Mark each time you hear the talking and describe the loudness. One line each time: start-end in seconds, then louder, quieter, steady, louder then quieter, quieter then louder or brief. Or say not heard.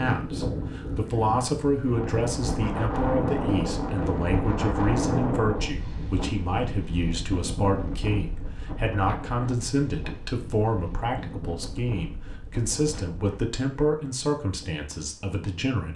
0.0-15.9 steady.